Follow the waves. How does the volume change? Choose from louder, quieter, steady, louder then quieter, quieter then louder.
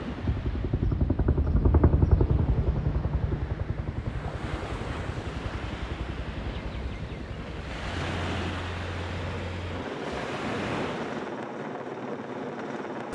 louder.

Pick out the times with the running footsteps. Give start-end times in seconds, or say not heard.
not heard.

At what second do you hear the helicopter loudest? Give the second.
2 s.